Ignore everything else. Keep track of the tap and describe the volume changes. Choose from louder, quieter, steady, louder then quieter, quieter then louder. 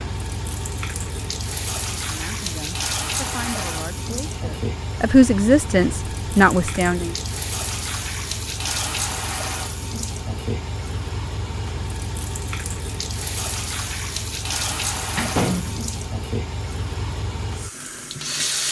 steady.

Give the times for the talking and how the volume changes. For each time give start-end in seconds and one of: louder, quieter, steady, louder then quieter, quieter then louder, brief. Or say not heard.
2.0-7.2 louder.